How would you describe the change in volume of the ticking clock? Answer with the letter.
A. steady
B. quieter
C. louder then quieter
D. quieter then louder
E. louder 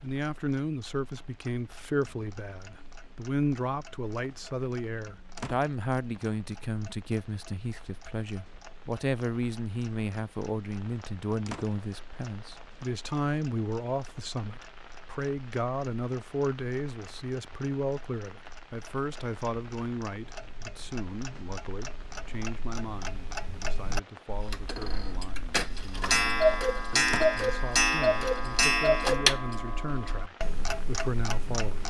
E.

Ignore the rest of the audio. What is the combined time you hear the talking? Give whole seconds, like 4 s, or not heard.
32 s.